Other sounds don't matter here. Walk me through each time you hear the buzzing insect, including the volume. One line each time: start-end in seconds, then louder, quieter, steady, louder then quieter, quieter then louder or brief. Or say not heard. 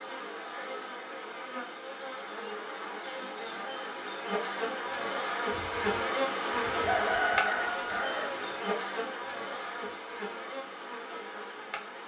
0.0-12.0 louder then quieter.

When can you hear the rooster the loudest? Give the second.
7 s.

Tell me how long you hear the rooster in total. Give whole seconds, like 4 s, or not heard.
3 s.